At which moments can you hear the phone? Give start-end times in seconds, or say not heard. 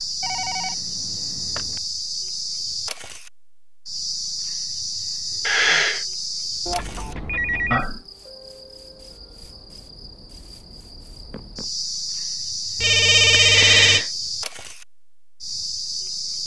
0.2-1.8, 6.7-7.8, 12.8-14.0.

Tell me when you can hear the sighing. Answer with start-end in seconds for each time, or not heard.
5.5-6.0, 13.3-14.1.